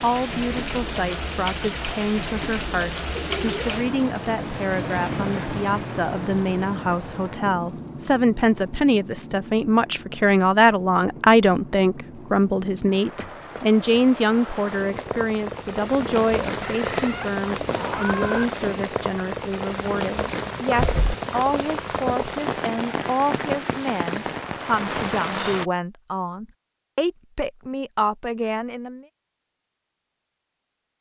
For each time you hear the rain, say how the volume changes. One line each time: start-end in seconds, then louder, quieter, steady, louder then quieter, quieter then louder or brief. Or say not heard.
0.0-25.7 quieter then louder.